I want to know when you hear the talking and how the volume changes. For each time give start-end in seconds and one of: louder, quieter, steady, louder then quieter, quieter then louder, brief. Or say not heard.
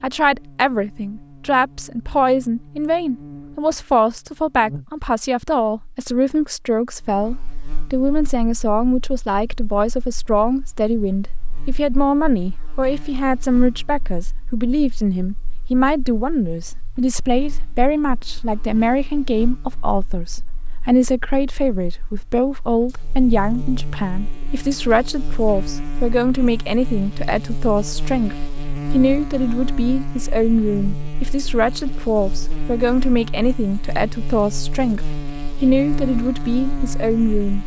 0.0-37.6 steady.